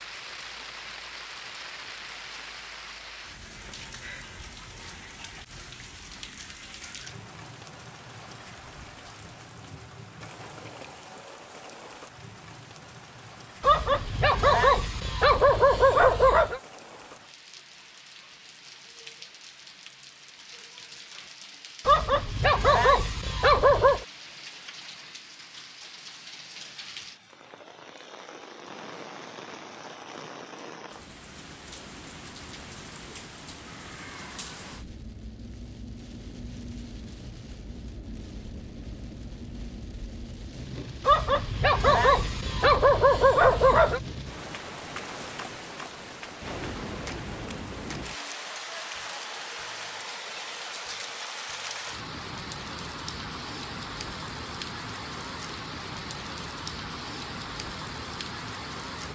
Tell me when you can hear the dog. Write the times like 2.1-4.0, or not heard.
13.6-16.6, 21.9-24.1, 41.0-44.0.